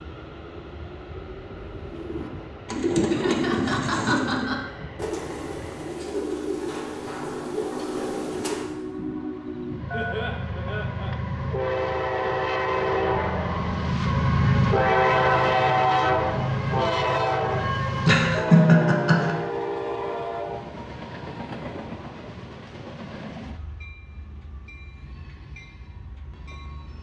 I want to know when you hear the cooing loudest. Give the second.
3 s.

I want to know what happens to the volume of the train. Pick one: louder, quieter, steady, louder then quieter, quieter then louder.
louder then quieter.